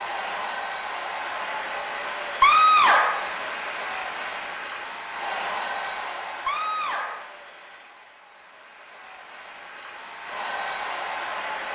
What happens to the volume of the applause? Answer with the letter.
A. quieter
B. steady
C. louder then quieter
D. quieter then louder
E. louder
D.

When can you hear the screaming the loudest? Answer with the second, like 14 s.
3 s.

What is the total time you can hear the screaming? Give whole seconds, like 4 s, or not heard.
2 s.